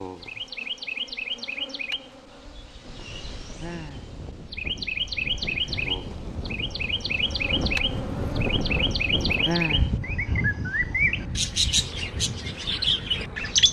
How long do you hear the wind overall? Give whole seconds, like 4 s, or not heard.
11 s.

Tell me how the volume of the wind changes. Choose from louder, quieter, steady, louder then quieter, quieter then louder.
louder then quieter.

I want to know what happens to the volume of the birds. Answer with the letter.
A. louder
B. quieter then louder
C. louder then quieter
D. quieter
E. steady
A.